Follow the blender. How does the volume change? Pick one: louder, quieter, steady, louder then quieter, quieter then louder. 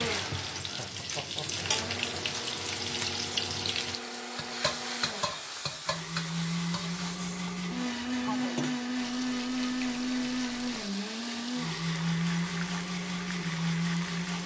louder.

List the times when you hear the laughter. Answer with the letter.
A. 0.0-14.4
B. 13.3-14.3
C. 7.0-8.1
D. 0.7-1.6
D.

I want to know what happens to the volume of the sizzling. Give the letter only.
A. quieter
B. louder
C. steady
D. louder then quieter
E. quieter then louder
A.